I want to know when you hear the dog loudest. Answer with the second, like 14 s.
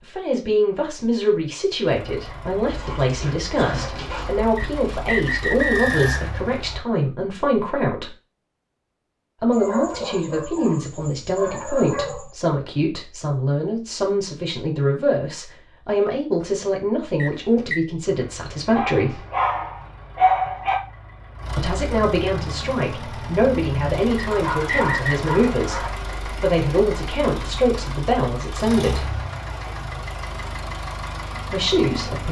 20 s.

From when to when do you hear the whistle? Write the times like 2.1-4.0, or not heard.
4.5-6.2, 17.1-17.8, 24.1-25.1.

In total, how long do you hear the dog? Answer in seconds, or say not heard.
8 s.